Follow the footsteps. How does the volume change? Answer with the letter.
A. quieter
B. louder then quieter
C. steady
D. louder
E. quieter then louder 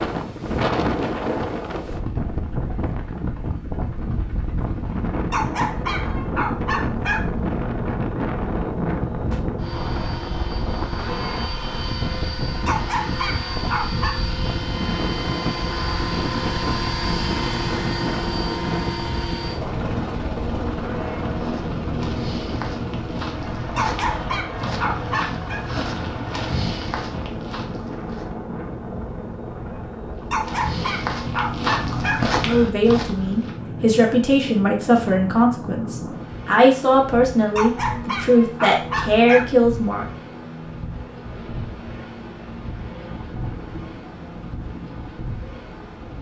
D.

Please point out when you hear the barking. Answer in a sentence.
The barking can be heard from 5.3 to 7.2 s, from 12.7 to 14.2 s, from 23.8 to 25.6 s, from 30.3 to 32.2 s and from 37.5 to 39.5 s.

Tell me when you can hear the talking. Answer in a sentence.
You can hear the talking from 32.4 to 40.0 s.